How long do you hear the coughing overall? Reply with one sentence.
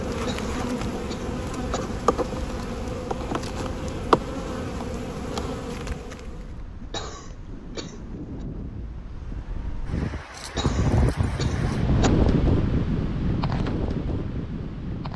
You can hear the coughing for 5 seconds altogether.